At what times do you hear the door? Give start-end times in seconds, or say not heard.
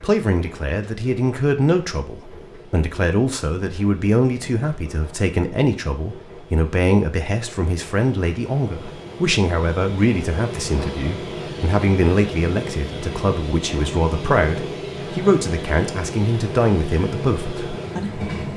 not heard.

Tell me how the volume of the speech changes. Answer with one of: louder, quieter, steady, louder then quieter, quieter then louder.
steady.